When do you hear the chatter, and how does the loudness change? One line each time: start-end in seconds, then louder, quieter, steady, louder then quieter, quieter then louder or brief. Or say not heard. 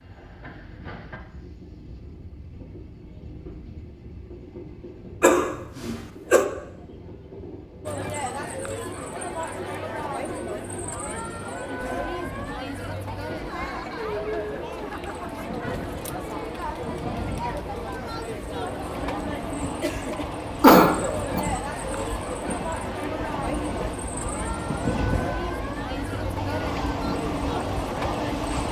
7.8-28.6 steady.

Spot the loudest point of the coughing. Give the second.
21 s.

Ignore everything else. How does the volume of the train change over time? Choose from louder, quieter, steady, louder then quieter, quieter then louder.
louder.